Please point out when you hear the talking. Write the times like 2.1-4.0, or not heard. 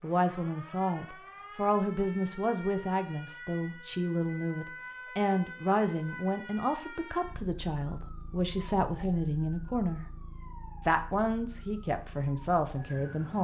0.0-10.1, 10.8-13.3.